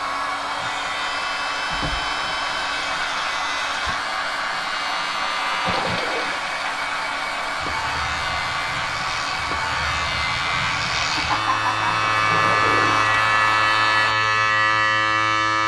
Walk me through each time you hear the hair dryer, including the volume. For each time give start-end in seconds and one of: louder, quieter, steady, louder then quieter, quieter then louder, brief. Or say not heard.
0.0-14.2 steady.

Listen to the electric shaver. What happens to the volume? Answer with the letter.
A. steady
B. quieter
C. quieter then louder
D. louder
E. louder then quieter
D.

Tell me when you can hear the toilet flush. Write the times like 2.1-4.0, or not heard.
1.7-2.9, 5.7-6.5, 11.8-13.2.